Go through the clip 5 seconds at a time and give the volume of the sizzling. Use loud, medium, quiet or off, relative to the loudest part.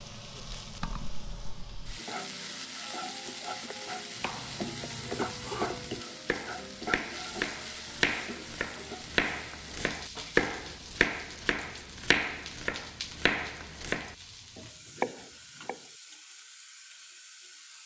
loud, loud, medium, medium.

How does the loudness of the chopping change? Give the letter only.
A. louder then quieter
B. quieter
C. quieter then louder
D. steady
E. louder
E.